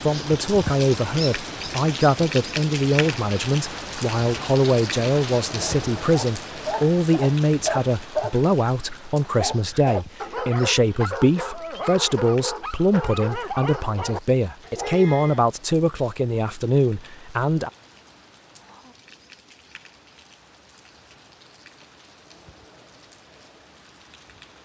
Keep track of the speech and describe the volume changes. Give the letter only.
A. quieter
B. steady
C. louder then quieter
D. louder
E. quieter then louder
B.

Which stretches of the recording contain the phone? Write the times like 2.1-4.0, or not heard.
not heard.